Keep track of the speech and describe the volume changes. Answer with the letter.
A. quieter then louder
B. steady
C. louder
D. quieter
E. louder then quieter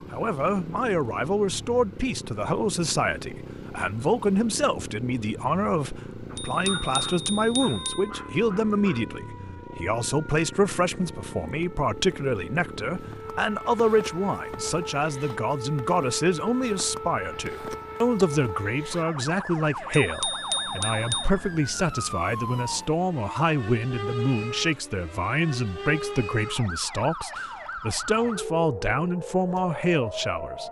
B.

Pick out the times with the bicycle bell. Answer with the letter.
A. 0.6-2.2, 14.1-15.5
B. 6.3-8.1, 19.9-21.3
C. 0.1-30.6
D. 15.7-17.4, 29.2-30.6
B.